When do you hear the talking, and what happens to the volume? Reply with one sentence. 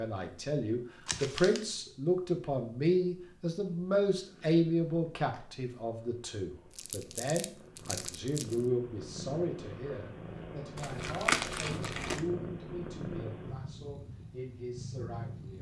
The talking can be heard from 0.0 to 15.5 s, getting quieter.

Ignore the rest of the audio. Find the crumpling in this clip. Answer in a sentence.
The crumpling can be heard from 1.1 to 1.6 s, from 6.8 to 8.6 s and from 10.8 to 12.2 s.